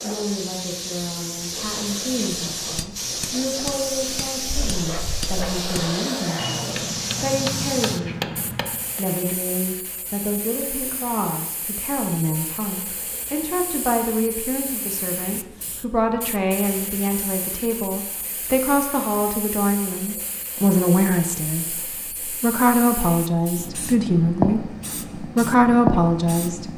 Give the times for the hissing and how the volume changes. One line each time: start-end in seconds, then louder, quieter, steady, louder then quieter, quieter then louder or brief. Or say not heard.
0.0-26.7 quieter then louder.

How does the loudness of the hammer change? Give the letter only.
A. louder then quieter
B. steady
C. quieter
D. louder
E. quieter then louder
E.